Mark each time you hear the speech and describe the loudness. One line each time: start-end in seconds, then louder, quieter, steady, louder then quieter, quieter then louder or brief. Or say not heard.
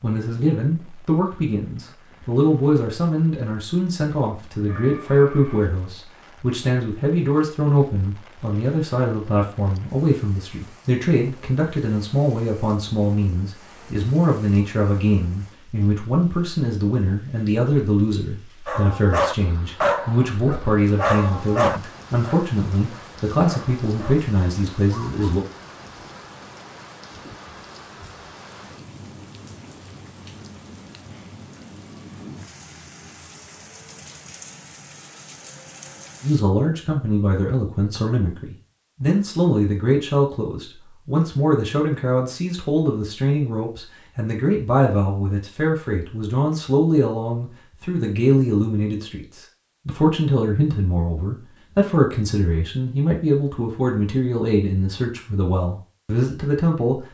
0.0-25.4 steady
36.2-57.0 steady.